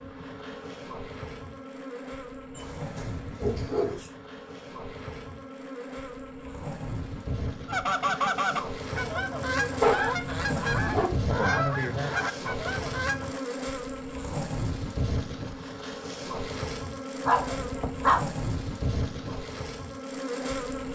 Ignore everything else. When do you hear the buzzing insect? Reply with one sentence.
The buzzing insect can be heard from 0.0 to 20.8 s.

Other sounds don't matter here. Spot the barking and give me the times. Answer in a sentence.
The barking can be heard from 2.5 to 4.0 s, from 9.8 to 11.3 s and from 17.2 to 18.2 s.